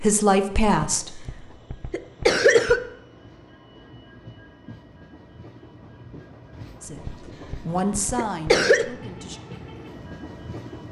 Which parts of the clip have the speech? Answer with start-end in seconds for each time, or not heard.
0.0-1.2, 6.8-9.4.